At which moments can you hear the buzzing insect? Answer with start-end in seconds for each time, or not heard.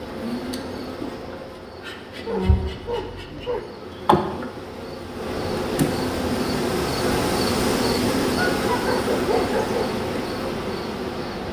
0.0-11.4.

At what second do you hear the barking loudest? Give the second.
9 s.